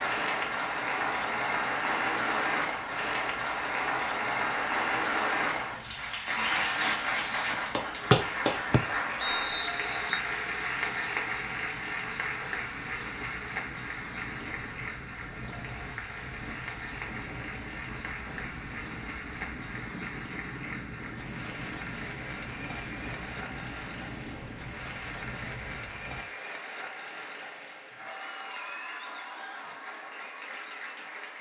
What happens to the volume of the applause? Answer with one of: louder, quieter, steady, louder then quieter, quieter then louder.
quieter.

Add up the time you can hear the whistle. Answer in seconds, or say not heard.
2 s.